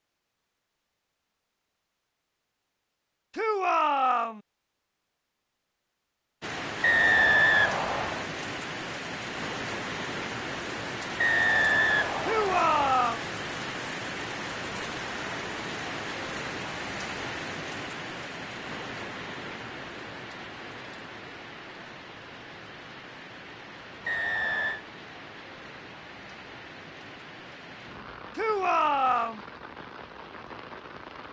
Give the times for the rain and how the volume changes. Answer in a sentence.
You can hear the rain from 6.4 to 31.2 s, getting quieter.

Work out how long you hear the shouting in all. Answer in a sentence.
The shouting can be heard for 3 seconds in total.